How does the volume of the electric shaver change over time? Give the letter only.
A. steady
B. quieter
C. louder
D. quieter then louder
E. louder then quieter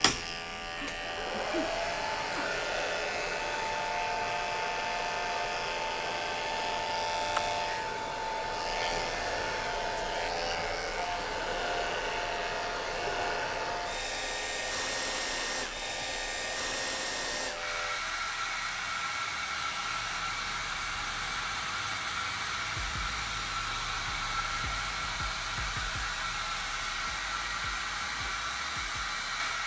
B.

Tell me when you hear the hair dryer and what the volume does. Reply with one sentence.
You can hear the hair dryer from 0.0 to 29.6 s, at a steady volume.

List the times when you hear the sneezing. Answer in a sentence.
You can hear the sneezing from 0.6 to 2.5 s.